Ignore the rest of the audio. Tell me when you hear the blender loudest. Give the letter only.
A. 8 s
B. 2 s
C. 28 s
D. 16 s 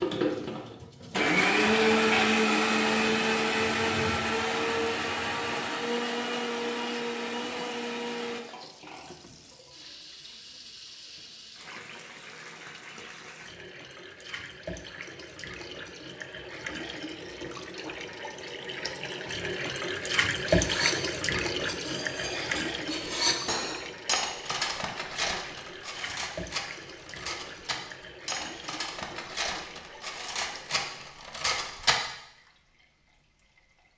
B.